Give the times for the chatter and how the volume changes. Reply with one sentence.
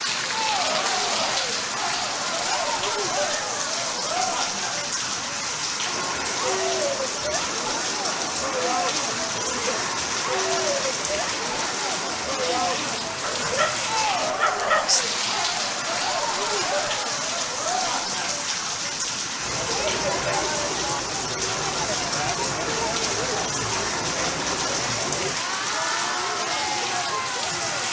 The chatter can be heard from 0.1 to 27.8 s, at a steady volume.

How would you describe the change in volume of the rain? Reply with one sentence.
The loudness of the rain stays about the same.